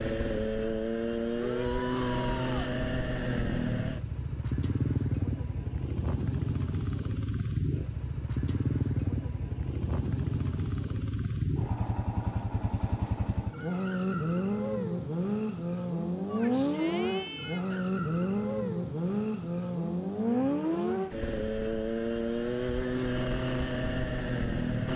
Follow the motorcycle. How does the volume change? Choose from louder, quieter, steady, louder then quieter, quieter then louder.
steady.